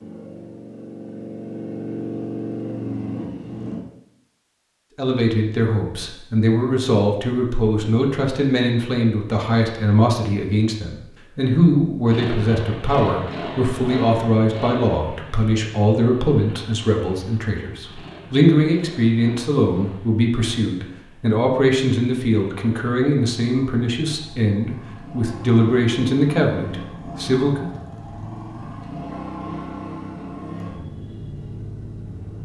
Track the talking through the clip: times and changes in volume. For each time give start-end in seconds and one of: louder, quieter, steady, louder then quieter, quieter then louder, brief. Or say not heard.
5.0-27.7 steady.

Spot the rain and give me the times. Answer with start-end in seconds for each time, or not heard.
not heard.